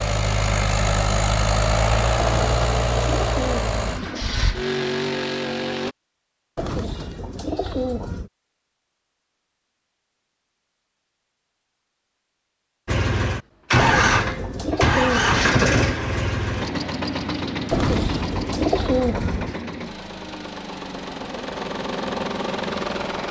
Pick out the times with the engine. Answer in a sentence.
The engine can be heard from 0.0 to 6.0 s and from 12.8 to 23.2 s.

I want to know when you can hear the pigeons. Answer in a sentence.
You can hear the pigeons from 2.1 to 4.2 s, from 6.5 to 8.3 s, from 13.8 to 15.7 s and from 17.7 to 19.6 s.